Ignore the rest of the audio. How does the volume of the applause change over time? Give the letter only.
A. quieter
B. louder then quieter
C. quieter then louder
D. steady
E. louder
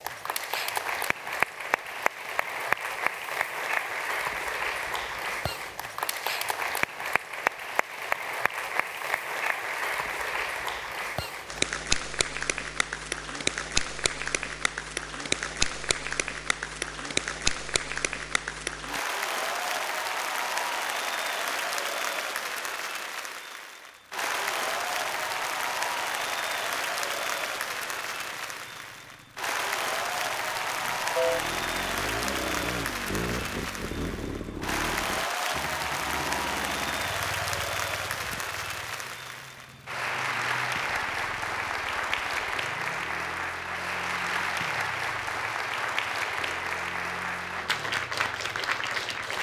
D.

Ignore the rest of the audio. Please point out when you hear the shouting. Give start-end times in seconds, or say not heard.
not heard.